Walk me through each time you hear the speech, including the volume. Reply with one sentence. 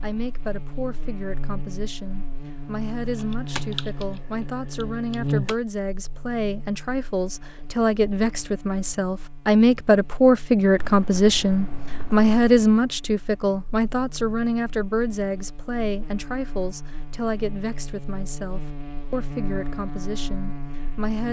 The speech can be heard from 0.0 to 21.2 s, getting louder then quieter.